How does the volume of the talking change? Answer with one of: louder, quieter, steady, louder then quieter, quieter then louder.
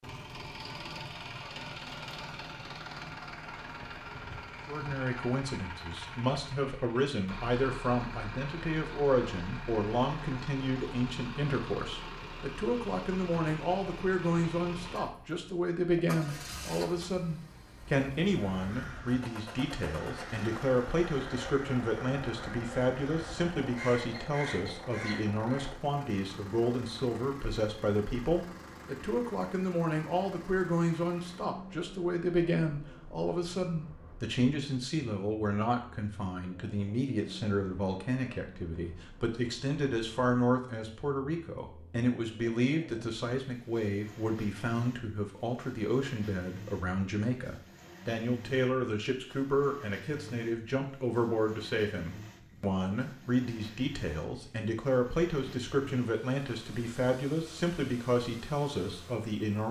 steady.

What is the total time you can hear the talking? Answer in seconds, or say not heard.
55 s.